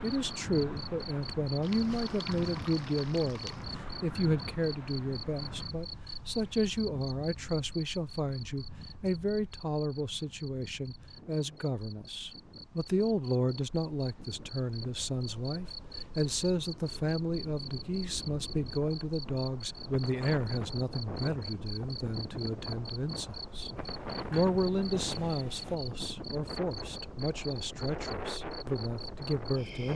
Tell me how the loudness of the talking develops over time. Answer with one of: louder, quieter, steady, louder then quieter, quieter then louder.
steady.